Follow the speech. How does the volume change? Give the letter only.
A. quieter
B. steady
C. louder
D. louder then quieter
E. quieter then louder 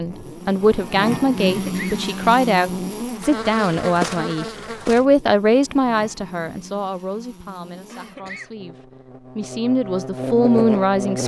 E.